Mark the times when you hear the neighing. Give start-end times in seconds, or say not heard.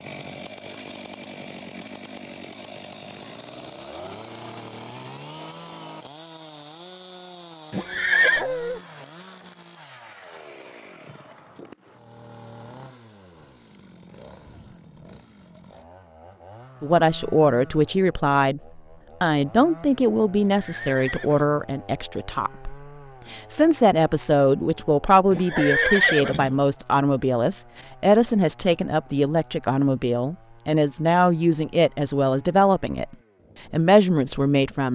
7.7-8.4, 20.5-21.4, 25.3-26.6.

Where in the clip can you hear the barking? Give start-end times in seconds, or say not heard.
8.3-8.8, 25.5-25.9.